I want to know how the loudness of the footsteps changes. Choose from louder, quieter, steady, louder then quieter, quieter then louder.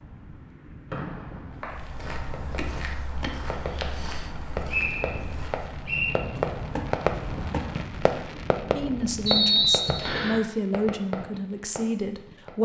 quieter then louder.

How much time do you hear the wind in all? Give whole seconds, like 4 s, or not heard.
9 s.